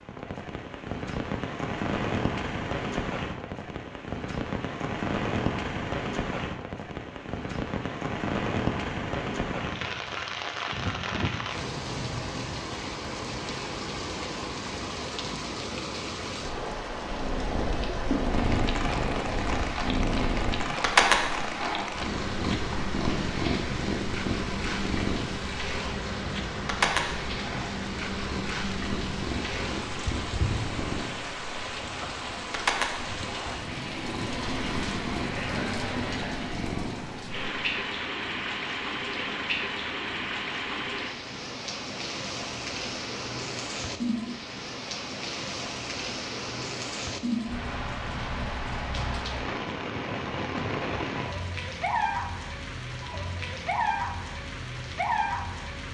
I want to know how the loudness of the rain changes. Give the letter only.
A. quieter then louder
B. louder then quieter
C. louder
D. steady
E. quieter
D.